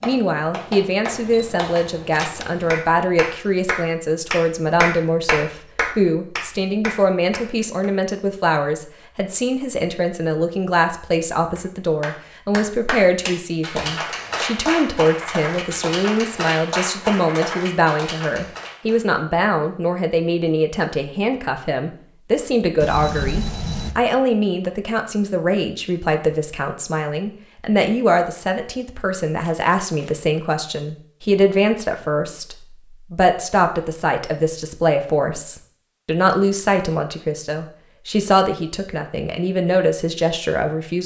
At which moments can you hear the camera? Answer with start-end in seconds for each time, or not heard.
1.1-2.8, 22.8-23.9, 29.4-30.2.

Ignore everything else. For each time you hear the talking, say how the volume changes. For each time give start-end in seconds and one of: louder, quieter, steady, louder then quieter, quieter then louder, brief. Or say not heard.
0.0-41.0 steady.